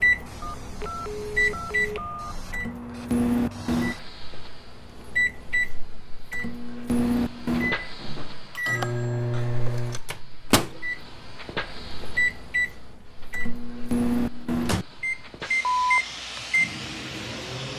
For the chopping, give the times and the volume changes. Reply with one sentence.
The chopping can't be heard in this clip.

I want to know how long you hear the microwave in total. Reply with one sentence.
You can hear the microwave for 18 seconds altogether.